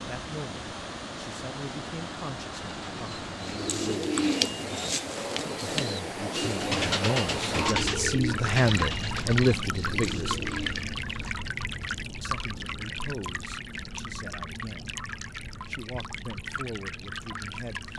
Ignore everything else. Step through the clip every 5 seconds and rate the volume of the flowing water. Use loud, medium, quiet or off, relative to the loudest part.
medium, loud, loud, medium.